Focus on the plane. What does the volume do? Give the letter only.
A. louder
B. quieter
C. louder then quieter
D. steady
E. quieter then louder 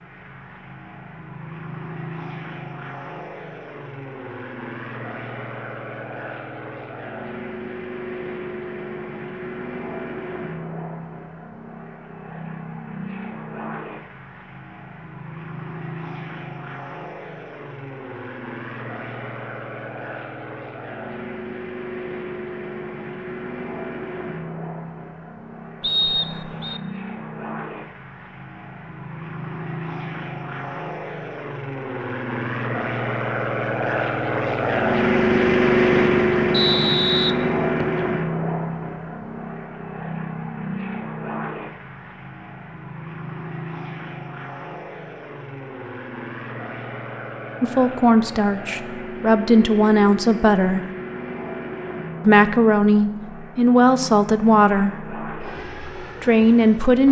C.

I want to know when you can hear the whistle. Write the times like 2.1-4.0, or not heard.
25.8-26.8, 36.5-38.0.